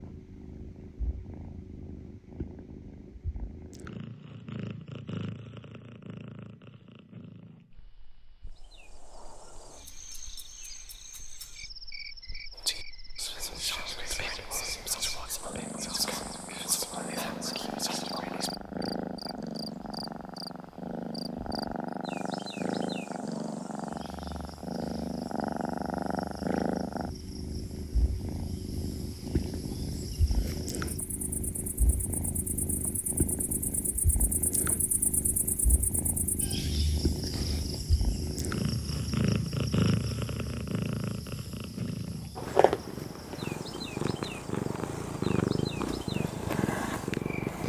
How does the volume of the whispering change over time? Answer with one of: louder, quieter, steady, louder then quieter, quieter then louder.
steady.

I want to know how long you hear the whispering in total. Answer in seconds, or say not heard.
6 s.